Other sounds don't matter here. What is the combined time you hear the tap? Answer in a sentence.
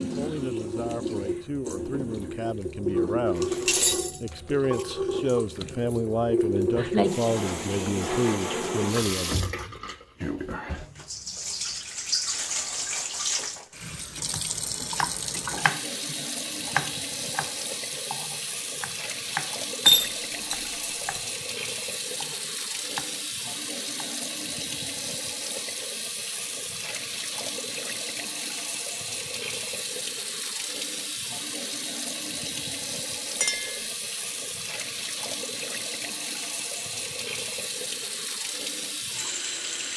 You can hear the tap for 40 seconds altogether.